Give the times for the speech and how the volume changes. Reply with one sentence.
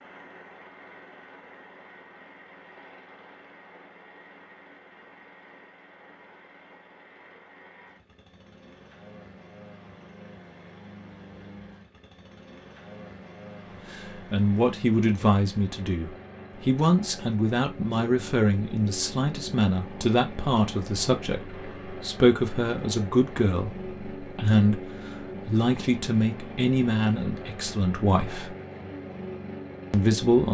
You can hear the speech from 13.9 to 28.6 s, at a steady volume; and briefly from 29.9 to 30.4 s.